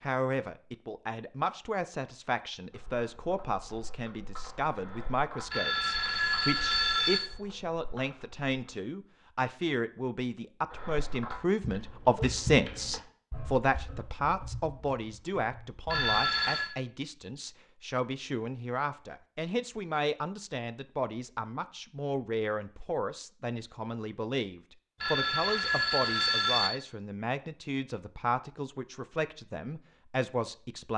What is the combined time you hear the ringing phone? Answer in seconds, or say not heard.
4 s.